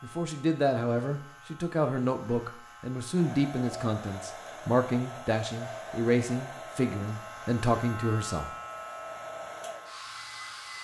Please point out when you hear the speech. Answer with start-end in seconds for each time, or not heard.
0.0-8.5.